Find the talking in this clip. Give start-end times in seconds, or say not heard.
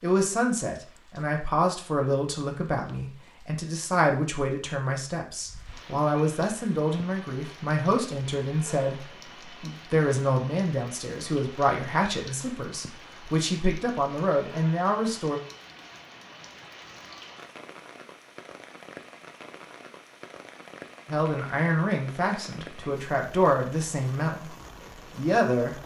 0.0-15.4, 21.1-24.6, 25.1-25.8.